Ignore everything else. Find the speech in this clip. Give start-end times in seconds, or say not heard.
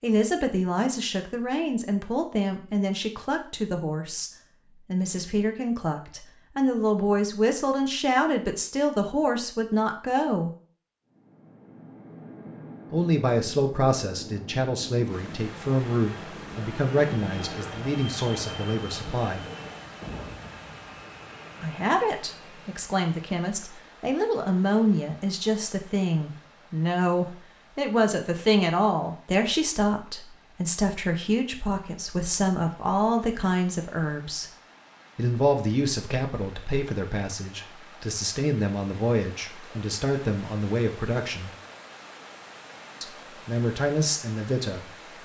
0.0-4.3, 4.9-10.5, 12.9-19.4, 21.6-34.5, 35.1-41.5, 43.0-45.2.